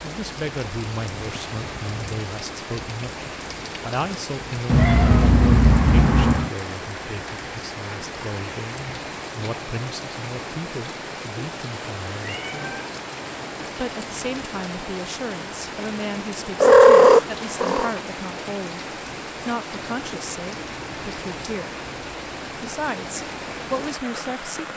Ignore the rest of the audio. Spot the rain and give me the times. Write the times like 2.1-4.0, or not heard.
0.0-24.7.